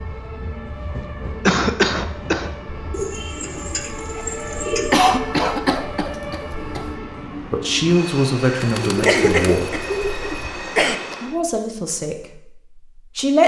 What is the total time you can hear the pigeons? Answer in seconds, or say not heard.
4 s.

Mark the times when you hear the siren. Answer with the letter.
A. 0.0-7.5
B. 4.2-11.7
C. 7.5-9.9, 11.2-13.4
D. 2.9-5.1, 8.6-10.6
A.